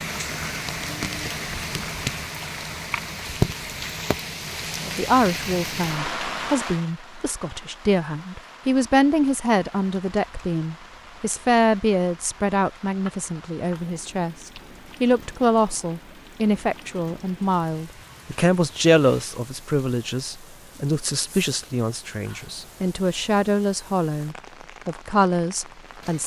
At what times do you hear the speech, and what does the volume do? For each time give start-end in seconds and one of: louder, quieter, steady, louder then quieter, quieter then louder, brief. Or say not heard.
4.8-26.2 steady.